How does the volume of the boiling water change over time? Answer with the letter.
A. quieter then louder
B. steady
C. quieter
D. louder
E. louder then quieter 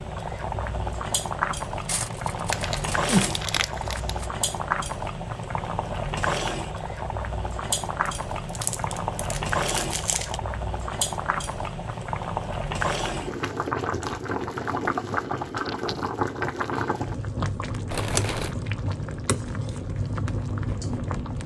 B.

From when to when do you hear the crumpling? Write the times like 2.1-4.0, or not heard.
2.5-4.2, 8.1-10.4, 17.9-18.6.